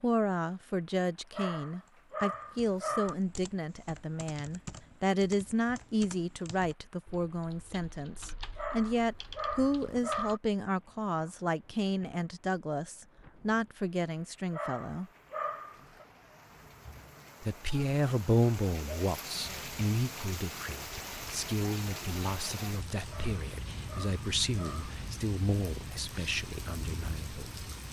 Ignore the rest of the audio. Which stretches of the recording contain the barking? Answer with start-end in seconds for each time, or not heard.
1.3-3.1, 8.6-10.4, 14.5-16.1, 23.1-24.9.